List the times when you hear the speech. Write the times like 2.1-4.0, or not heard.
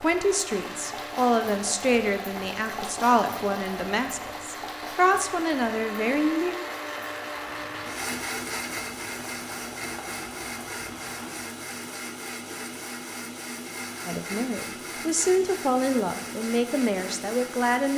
0.0-6.5, 14.1-17.9.